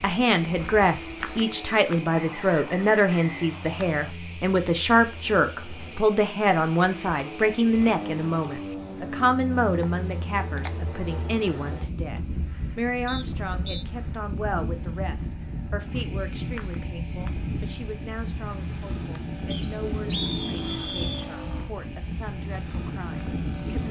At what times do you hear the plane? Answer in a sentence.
You can hear the plane from 0.0 to 23.8 s.